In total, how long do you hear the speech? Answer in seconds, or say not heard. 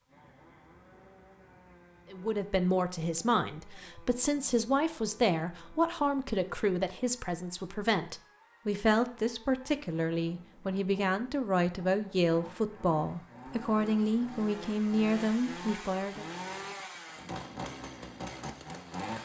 14 s.